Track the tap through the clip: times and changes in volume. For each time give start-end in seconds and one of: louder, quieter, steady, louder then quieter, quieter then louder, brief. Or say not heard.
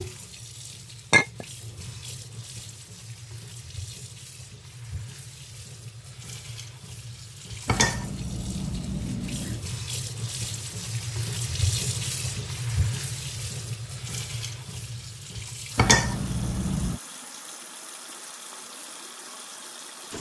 0.0-20.1 louder then quieter.